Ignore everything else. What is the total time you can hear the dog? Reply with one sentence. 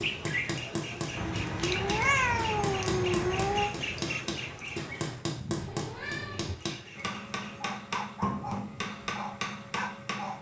The dog can be heard for 3 seconds in total.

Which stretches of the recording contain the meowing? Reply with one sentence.
The meowing can be heard from 1.1 to 3.7 s and from 5.5 to 6.6 s.